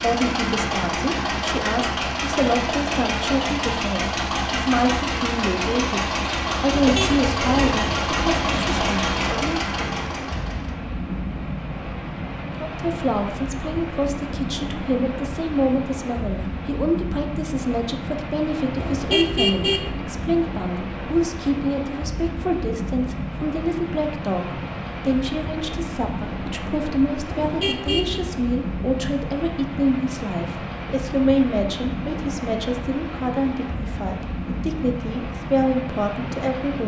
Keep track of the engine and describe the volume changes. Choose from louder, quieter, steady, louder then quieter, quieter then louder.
steady.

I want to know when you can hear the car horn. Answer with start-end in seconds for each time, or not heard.
6.7-7.8, 18.8-19.9, 27.2-28.2.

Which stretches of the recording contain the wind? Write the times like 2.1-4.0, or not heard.
7.7-36.8.